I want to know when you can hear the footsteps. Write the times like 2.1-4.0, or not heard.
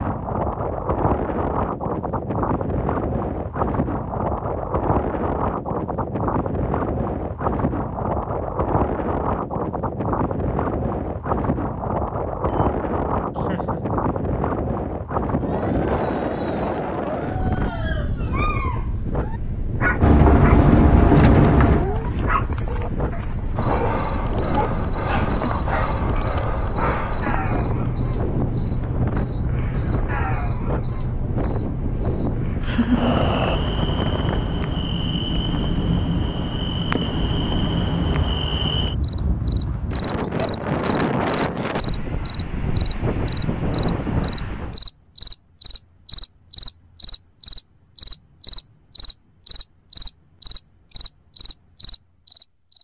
not heard.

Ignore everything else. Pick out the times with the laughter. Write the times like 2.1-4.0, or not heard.
13.3-13.9, 32.6-33.4.